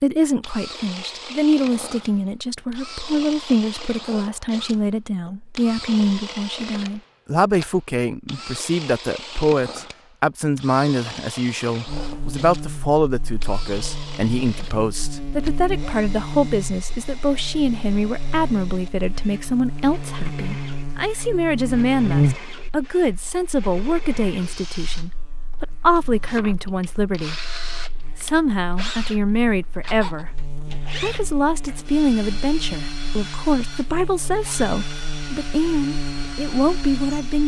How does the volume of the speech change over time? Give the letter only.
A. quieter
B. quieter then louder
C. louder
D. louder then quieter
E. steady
E.